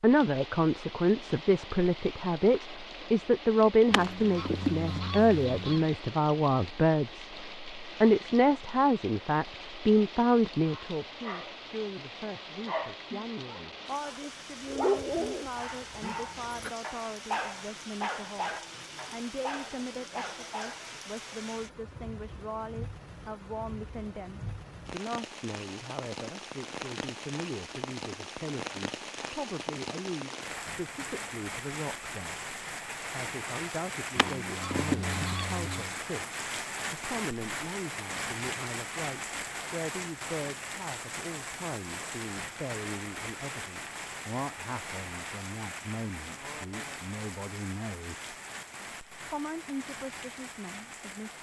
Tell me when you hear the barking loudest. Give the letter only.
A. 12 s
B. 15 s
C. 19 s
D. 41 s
B.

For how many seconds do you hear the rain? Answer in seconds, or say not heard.
51 s.